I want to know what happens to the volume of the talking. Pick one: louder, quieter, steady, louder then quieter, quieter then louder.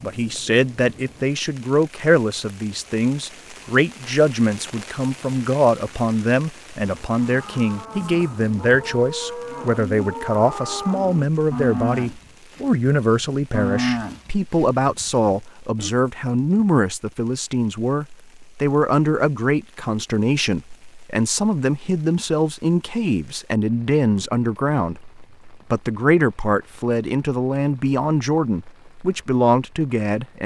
steady.